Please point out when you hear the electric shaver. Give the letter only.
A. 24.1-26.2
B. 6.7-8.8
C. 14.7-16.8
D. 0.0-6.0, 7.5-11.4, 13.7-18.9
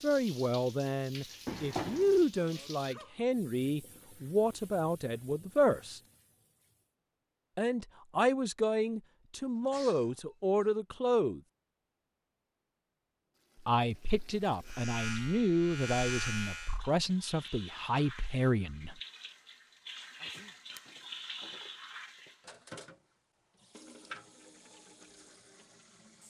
C.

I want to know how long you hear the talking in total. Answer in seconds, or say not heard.
15 s.